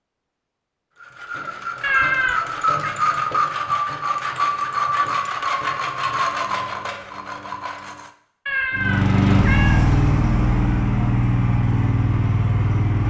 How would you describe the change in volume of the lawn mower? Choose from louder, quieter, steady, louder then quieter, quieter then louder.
quieter.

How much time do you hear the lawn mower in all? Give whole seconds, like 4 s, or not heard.
4 s.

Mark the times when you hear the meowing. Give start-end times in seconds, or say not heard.
1.8-3.0, 8.4-9.8.